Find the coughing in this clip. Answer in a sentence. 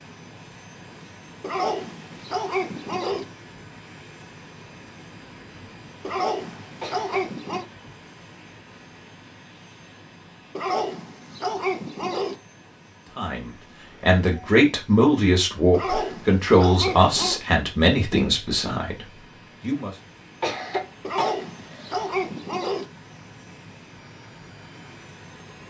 The coughing can be heard from 6.8 to 7.2 s and from 20.4 to 22.0 s.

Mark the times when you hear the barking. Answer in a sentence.
The barking can be heard from 1.4 to 3.2 s, from 6.0 to 7.7 s, from 10.6 to 12.3 s, from 15.7 to 17.4 s and from 21.0 to 22.9 s.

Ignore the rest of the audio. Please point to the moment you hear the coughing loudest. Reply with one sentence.
The loudest moment of the coughing is at 21 seconds.